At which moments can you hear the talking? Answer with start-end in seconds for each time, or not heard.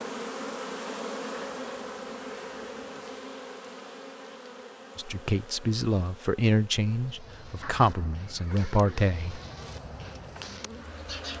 5.0-9.4.